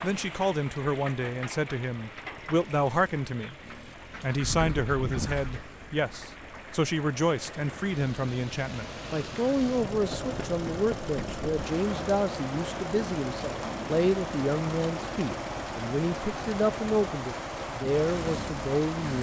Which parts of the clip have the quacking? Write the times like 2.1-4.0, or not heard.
4.1-5.7.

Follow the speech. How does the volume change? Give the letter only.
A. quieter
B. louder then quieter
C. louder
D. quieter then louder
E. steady
E.